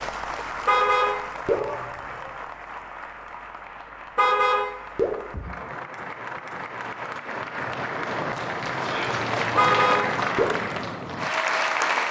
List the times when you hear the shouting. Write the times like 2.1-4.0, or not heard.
1.4-2.5, 8.8-9.2.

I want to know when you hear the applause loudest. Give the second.
12 s.